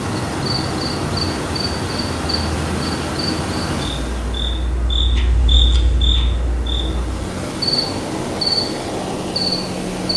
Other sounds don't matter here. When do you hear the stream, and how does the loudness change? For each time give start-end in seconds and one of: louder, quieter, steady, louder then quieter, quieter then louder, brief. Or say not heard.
0.0-10.1 quieter then louder.